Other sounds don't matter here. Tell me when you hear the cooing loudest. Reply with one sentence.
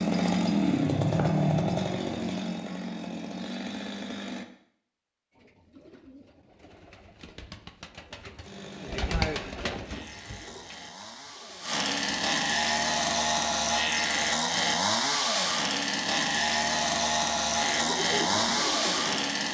The volume of the cooing peaks at 9 seconds.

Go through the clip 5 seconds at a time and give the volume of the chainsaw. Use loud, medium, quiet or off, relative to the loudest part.
loud, quiet, loud, loud.